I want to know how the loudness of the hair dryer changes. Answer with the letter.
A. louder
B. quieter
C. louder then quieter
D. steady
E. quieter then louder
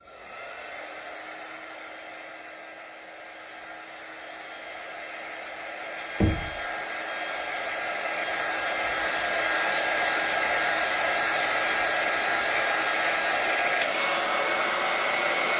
A.